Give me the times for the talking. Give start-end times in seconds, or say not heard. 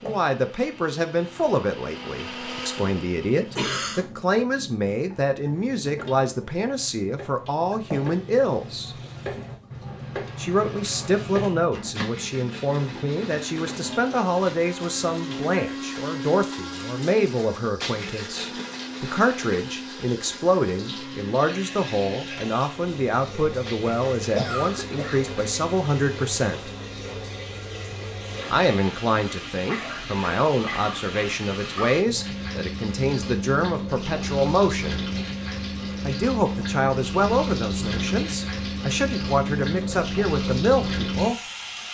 0.0-8.9, 10.3-26.7, 28.5-35.0, 36.0-41.4.